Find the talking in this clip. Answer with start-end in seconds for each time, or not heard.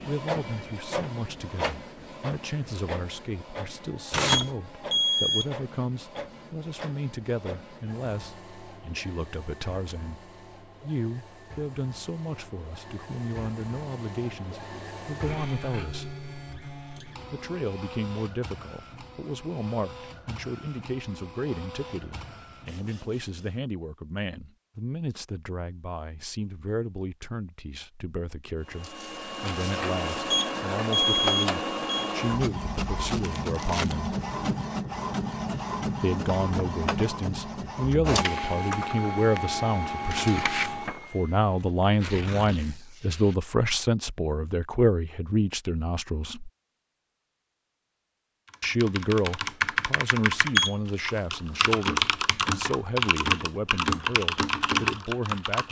0.1-16.1, 17.3-34.1, 36.0-46.5, 48.6-55.6.